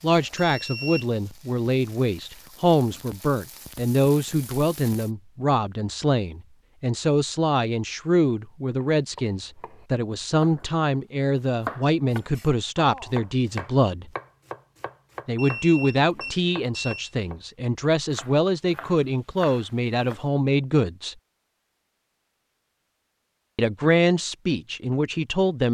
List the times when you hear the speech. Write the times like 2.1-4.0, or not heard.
0.0-14.1, 15.2-21.1, 23.6-25.6.